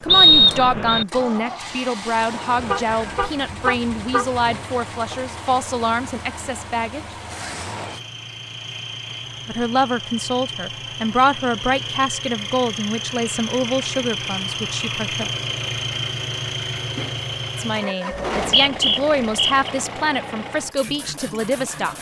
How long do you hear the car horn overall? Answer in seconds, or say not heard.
2 s.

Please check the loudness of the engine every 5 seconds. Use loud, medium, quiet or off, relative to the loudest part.
medium, medium, loud, loud, medium.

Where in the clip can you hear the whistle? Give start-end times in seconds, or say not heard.
0.1-1.1, 18.1-19.6.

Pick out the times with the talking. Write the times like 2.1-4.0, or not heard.
0.0-7.0, 9.4-15.3, 17.6-21.9.